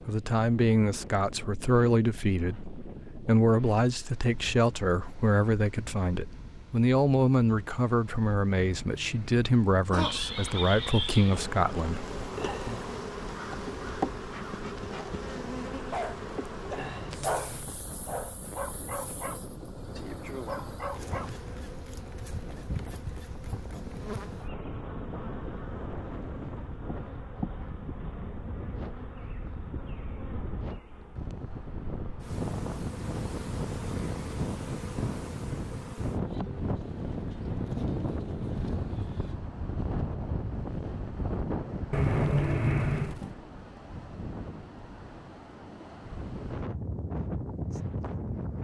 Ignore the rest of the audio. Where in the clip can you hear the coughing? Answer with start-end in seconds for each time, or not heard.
8.6-10.2, 16.8-17.8, 41.9-43.3.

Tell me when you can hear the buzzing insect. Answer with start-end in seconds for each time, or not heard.
9.9-39.4.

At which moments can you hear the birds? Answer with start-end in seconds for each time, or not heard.
not heard.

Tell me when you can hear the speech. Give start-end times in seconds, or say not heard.
0.1-12.8.